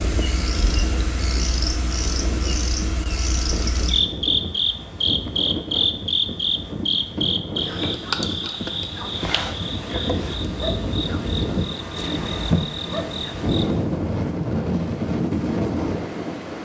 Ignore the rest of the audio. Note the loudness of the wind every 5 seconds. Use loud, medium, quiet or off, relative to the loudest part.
medium, medium, loud, loud.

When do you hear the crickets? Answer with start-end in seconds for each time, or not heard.
0.0-13.7.